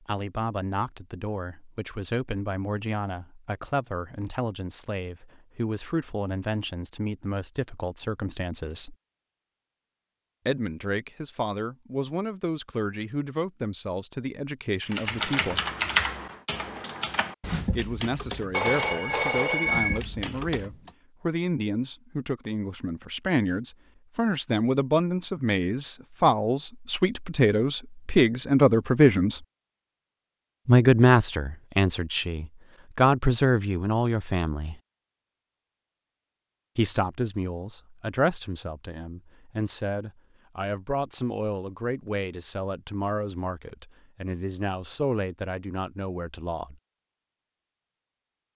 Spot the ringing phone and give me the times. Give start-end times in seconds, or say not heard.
18.5-20.0.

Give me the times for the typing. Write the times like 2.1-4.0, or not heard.
14.9-20.9.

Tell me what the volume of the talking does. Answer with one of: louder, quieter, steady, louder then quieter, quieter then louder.
louder then quieter.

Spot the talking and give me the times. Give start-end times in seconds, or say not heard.
0.1-8.9, 10.4-15.6, 17.8-29.4, 30.6-34.8, 36.8-46.8.